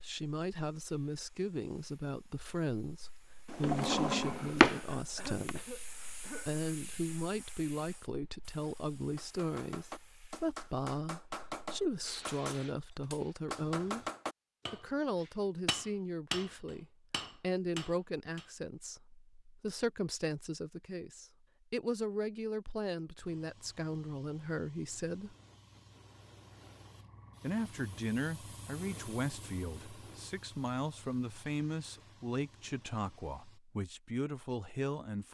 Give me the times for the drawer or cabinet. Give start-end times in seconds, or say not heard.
3.5-5.5.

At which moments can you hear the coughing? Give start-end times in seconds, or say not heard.
4.7-6.5.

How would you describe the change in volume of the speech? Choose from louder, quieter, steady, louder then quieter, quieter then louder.
steady.